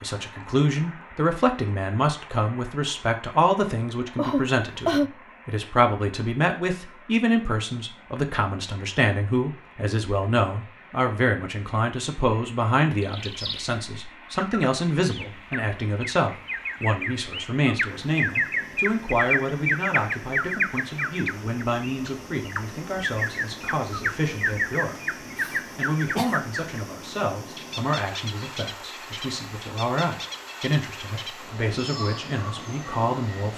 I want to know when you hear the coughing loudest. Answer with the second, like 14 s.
5 s.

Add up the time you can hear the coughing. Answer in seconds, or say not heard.
2 s.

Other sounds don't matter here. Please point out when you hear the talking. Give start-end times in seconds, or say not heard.
0.0-33.5.